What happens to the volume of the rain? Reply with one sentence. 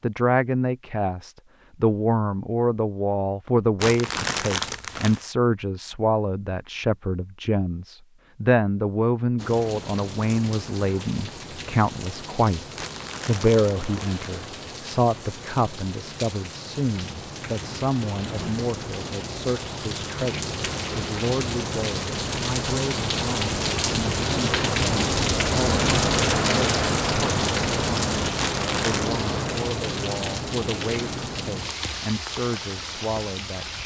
The loudness of the rain goes up, then down.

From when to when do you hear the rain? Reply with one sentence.
You can hear the rain from 9.3 to 33.8 s.